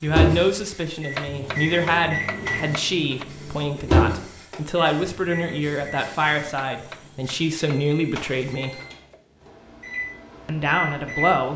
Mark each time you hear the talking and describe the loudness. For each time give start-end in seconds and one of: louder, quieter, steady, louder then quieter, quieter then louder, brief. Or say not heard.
0.0-8.8 steady
10.4-11.5 brief.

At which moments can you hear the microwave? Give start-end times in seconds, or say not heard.
0.0-11.5.